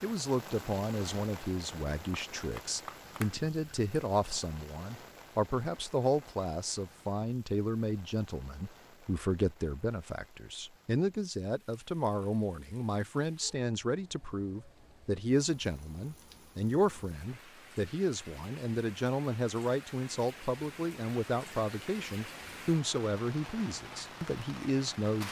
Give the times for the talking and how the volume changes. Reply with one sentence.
You can hear the talking from 0.0 to 25.2 s, at a steady volume.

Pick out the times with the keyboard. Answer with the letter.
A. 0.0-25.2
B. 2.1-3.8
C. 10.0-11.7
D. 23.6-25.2
B.